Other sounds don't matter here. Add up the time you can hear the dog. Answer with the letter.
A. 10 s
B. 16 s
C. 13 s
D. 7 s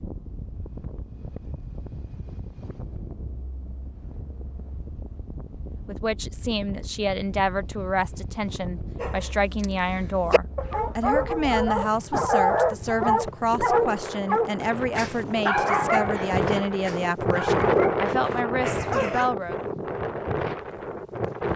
A.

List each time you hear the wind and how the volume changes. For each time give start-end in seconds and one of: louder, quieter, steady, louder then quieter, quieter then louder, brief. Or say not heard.
0.0-21.5 louder.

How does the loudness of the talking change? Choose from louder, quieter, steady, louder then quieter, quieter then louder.
steady.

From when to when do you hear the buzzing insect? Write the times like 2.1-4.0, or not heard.
not heard.